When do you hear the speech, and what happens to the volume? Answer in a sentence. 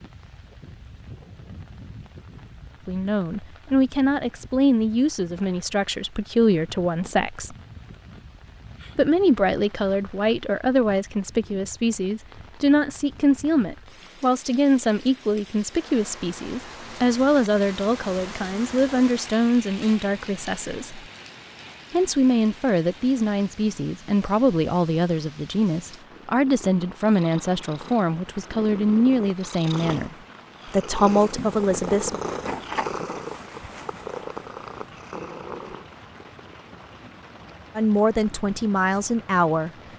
You can hear the speech from 2.9 to 7.5 s, getting quieter then louder; from 8.9 to 21.0 s, at a steady volume; from 21.9 to 32.2 s, at a steady volume; and briefly from 37.8 to 39.7 s.